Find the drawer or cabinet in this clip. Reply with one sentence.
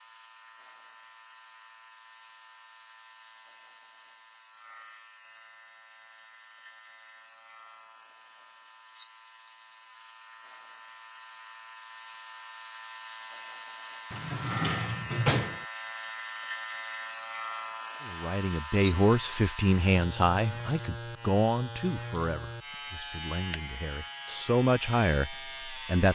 The drawer or cabinet can be heard from 14.1 to 15.7 s.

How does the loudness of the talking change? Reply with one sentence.
The loudness of the talking goes down, then up.